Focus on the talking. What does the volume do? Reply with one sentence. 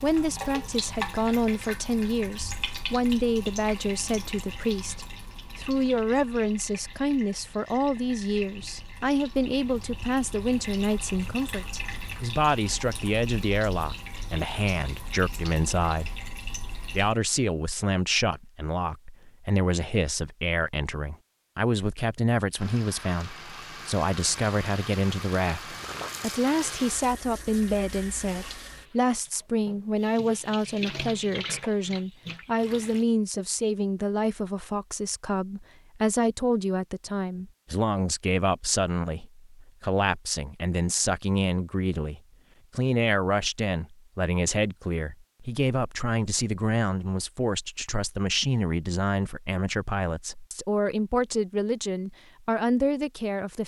The volume of the talking stays about the same.